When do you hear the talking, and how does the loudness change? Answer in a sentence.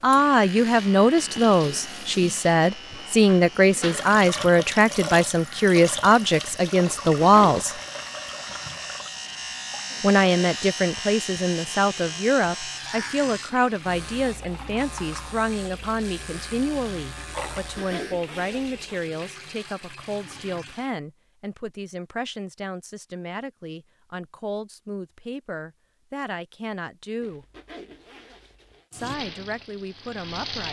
The talking can be heard from 0.0 to 7.8 s, at a steady volume; from 10.0 to 27.4 s, getting quieter; and briefly from 28.9 to 30.6 s.